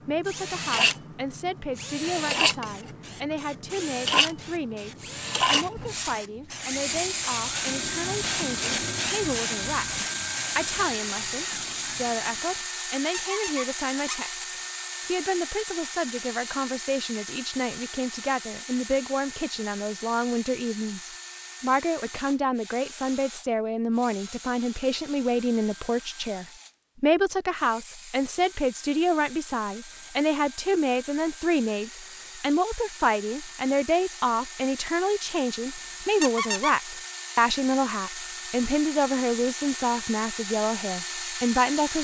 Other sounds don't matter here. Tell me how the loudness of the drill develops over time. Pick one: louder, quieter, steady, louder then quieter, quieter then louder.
quieter then louder.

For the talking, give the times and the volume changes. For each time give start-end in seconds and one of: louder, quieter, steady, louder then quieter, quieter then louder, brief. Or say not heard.
0.1-41.9 louder.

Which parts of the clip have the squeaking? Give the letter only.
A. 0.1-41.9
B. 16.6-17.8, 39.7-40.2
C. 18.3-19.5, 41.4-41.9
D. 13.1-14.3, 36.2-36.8
D.